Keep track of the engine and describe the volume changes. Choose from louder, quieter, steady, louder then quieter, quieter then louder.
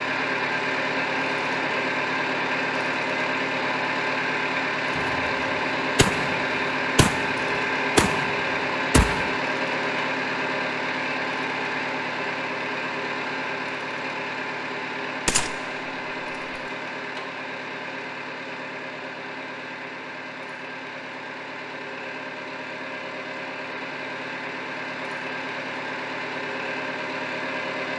quieter.